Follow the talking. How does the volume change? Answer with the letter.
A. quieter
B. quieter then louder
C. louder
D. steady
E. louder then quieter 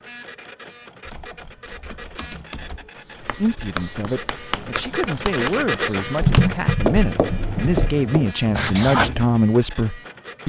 C.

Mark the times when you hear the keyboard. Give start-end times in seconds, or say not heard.
1.1-2.9, 6.2-8.0.